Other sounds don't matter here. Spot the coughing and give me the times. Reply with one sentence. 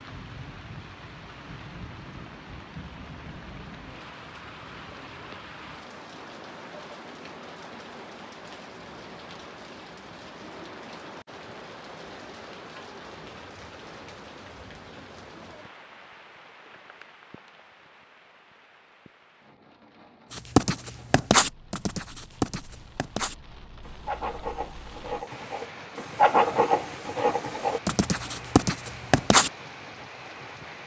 The coughing can't be heard in this clip.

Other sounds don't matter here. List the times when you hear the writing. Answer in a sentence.
You can hear the writing from 20.3 to 29.5 s.